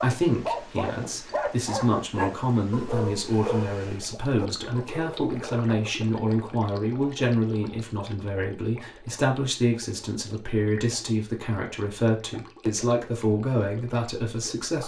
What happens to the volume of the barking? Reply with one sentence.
The volume of the barking goes down.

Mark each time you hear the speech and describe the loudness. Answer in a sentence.
You can hear the speech from 0.0 to 14.8 s, at a steady volume.